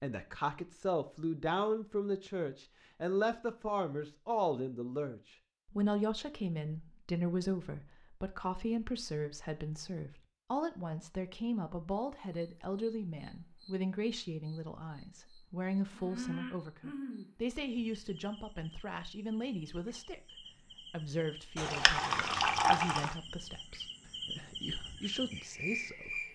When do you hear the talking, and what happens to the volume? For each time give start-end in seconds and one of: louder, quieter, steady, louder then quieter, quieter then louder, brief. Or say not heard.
0.0-26.3 quieter.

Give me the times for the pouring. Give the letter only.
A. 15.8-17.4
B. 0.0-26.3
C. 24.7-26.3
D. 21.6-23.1
D.